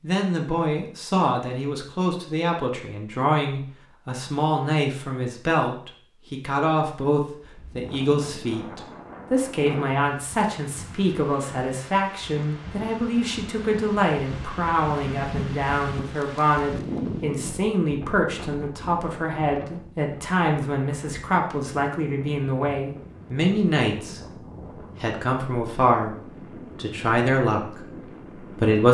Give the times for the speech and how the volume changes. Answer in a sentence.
The speech can be heard from 0.0 to 24.2 s, at a steady volume; briefly from 25.0 to 26.1 s; and briefly from 26.8 to 28.8 s.